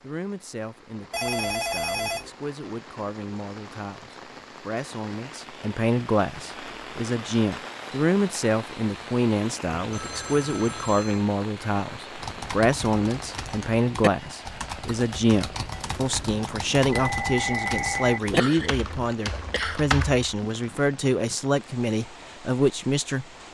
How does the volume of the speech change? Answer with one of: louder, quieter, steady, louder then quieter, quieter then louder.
louder.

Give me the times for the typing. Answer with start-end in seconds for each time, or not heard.
12.2-20.2.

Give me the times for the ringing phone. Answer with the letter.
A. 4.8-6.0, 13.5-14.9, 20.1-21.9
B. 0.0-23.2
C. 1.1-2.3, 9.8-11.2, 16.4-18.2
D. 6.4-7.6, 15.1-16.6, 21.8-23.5
C.